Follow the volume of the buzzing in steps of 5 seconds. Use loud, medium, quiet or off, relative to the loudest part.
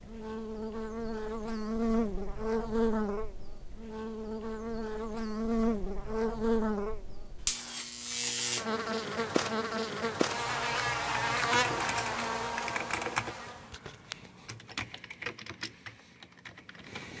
loud, loud, loud, off.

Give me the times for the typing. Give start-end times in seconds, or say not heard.
10.9-17.1.